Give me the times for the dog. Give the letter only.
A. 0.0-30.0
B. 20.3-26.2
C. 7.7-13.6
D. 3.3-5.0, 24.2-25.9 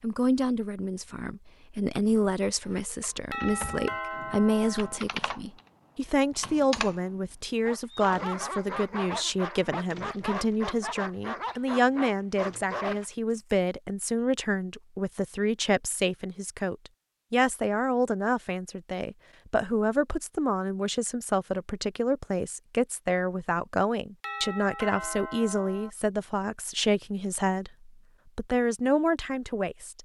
C.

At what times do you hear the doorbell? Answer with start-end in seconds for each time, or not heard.
3.3-5.0, 24.2-25.9.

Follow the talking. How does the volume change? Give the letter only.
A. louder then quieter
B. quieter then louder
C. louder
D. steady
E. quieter
D.